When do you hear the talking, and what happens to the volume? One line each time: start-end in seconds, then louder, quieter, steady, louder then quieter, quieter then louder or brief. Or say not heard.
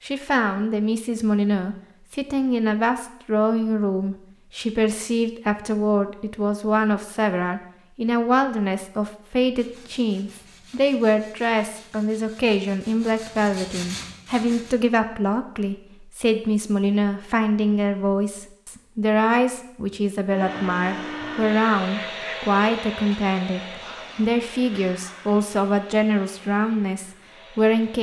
0.0-27.9 steady.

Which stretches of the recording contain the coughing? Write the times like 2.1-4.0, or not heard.
not heard.